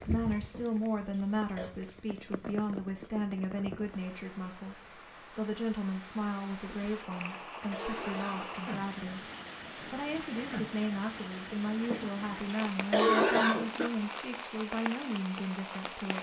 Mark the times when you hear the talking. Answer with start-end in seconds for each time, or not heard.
0.0-16.1.